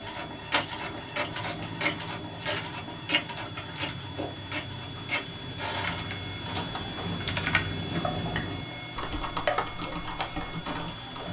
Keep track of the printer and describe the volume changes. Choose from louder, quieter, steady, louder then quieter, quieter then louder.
quieter.